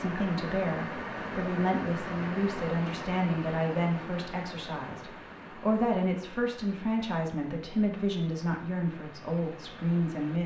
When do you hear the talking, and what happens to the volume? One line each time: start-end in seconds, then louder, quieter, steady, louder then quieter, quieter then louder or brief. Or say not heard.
0.0-10.4 steady.